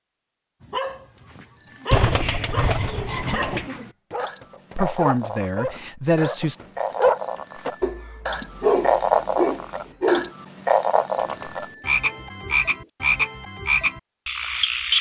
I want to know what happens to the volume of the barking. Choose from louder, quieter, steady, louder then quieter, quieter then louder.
louder.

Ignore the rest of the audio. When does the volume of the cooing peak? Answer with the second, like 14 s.
2 s.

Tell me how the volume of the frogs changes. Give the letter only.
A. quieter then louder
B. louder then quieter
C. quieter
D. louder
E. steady
D.